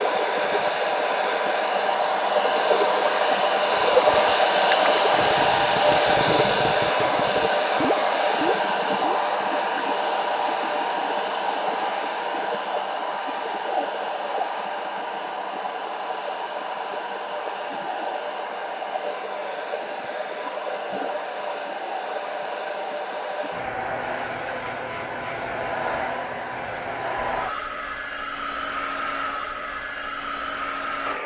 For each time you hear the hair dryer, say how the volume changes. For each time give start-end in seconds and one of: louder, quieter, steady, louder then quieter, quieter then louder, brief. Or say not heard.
0.0-31.2 quieter.